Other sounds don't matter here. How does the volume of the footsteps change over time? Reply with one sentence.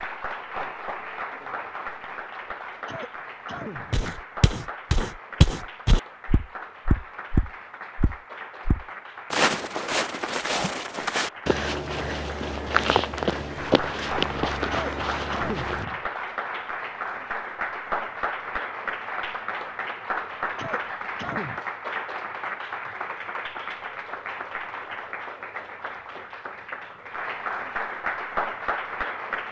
The loudness of the footsteps stays about the same.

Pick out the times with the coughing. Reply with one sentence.
The coughing can be heard from 2.7 to 4.0 s, from 14.6 to 16.1 s and from 20.4 to 21.6 s.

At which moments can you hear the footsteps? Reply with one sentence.
The footsteps can be heard from 3.9 to 15.8 s.